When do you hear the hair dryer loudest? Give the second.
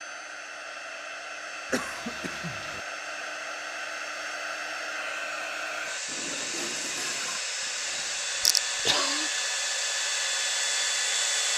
11 s.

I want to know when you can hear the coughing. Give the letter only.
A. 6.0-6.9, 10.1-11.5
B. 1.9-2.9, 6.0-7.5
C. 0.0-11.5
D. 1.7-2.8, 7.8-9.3
D.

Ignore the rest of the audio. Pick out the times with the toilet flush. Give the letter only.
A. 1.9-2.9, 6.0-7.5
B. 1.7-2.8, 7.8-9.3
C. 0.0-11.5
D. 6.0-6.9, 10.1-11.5
A.